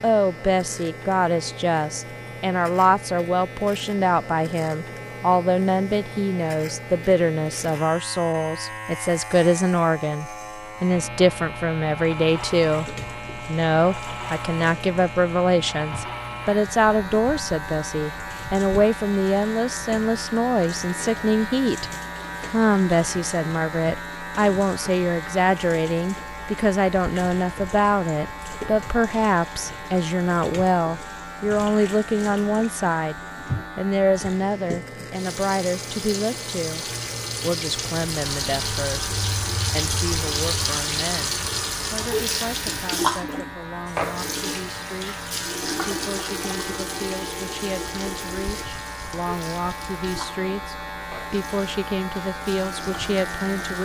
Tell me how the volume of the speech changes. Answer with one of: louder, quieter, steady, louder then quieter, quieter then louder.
quieter.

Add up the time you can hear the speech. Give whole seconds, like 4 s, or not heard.
54 s.